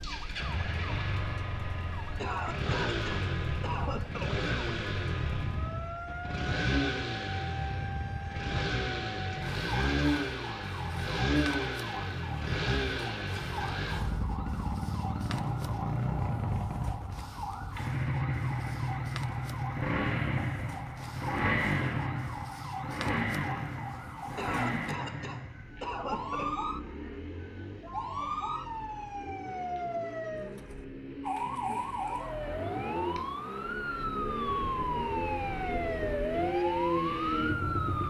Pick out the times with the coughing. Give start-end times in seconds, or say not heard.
2.1-4.4, 24.4-26.6.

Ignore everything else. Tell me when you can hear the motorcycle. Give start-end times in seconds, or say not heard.
0.0-38.0.